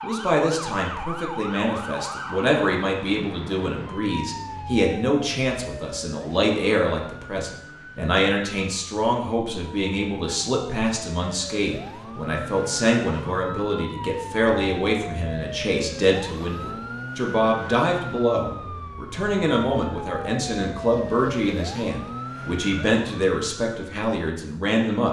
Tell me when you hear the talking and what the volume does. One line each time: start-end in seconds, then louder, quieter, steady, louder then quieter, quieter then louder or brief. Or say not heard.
0.0-25.0 steady.